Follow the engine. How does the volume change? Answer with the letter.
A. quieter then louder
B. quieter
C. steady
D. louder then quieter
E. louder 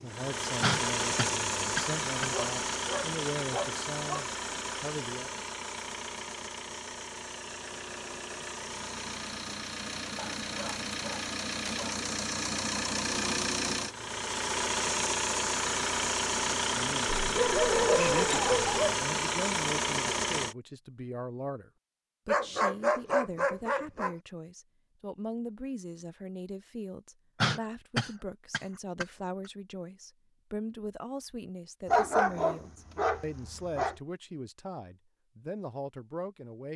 A.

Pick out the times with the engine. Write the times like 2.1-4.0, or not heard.
0.0-20.6.